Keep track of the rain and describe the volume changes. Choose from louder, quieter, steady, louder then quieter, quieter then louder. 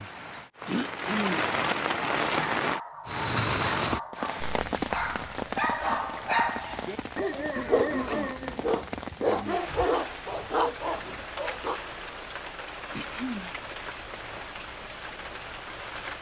quieter.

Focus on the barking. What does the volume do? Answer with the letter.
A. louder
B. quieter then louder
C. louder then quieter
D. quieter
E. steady
A.